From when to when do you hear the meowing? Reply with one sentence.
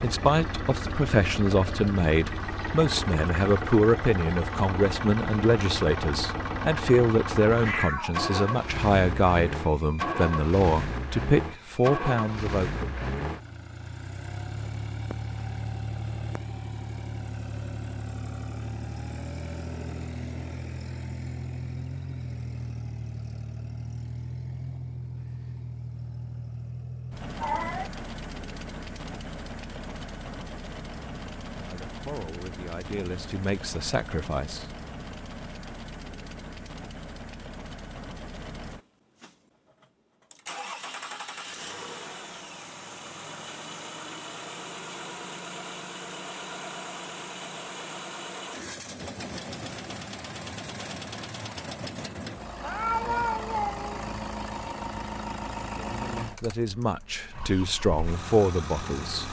The meowing can be heard from 7.5 to 8.2 s, from 27.4 to 27.9 s and from 52.6 to 54.0 s.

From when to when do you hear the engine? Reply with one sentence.
The engine can be heard from 0.0 to 59.2 s.